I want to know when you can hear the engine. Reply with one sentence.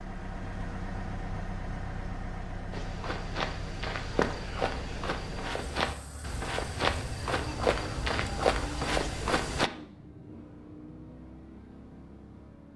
The engine can be heard from 0.0 to 12.7 s.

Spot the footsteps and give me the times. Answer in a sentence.
The footsteps can be heard from 2.7 to 9.7 s.